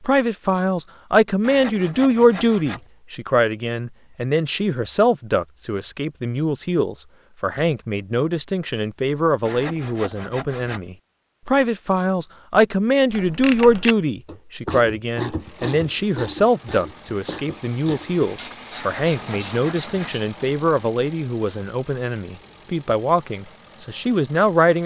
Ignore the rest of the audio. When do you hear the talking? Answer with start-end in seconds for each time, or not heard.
0.0-24.8.